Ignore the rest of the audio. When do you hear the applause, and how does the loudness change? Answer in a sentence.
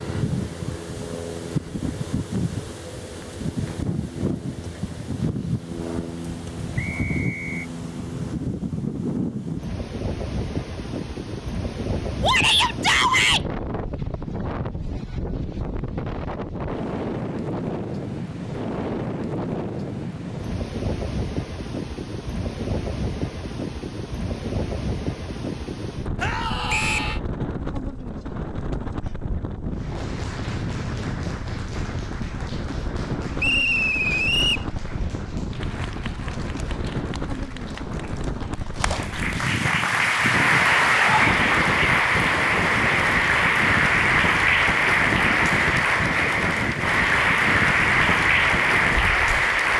You can hear the applause from 29.7 to 49.7 s, getting louder.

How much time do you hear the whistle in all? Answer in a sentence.
The whistle can be heard for 3 seconds in total.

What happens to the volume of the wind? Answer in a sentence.
The loudness of the wind stays about the same.